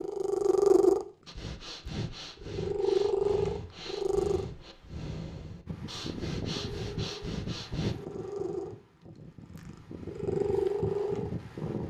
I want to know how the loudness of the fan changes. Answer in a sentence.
The volume of the fan goes down, then up.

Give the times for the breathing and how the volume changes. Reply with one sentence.
You can hear the breathing from 1.2 to 8.0 s, at a steady volume.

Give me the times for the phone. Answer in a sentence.
The phone can't be heard in this clip.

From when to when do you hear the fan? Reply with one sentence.
You can hear the fan from 5.7 to 11.8 s.